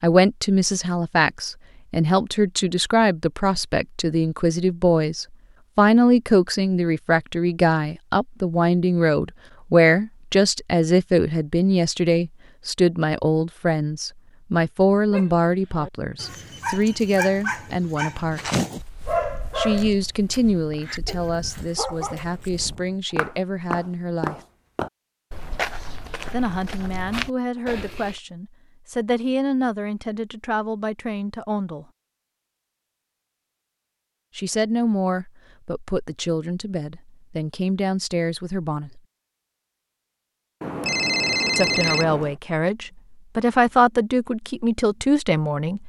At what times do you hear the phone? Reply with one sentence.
The phone can be heard from 40.6 to 42.4 s.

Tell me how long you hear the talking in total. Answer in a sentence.
The talking can be heard for 38 seconds in total.